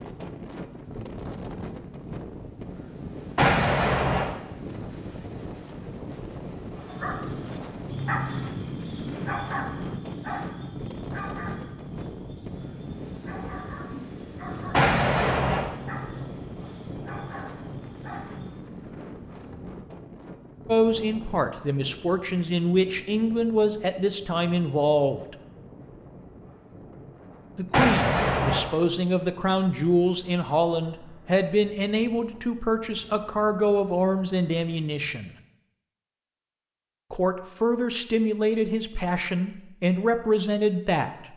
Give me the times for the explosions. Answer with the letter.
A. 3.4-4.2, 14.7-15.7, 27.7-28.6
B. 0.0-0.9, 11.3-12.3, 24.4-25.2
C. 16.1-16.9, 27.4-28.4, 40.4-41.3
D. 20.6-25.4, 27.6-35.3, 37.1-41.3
A.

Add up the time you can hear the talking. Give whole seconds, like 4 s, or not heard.
17 s.